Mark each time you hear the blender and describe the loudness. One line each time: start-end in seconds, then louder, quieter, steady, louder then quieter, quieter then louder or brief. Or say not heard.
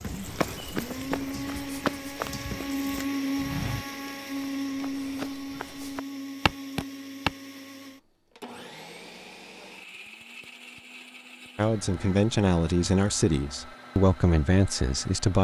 0.0-15.3 quieter.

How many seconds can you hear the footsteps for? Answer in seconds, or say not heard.
7 s.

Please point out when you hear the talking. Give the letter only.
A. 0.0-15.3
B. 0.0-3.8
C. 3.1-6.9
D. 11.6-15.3
D.